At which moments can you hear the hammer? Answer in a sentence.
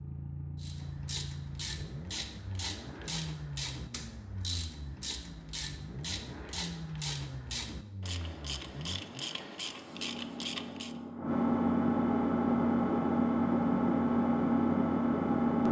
You can't hear the hammer here.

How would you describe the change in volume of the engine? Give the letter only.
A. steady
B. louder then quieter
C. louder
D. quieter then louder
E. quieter
C.